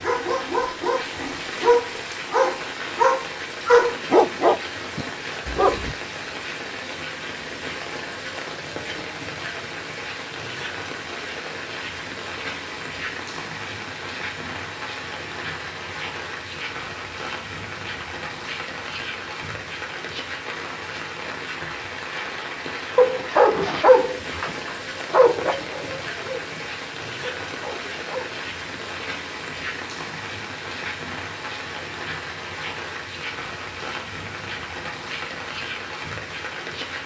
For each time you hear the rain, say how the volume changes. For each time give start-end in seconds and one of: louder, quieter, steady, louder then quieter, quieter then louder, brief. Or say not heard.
0.0-37.0 steady.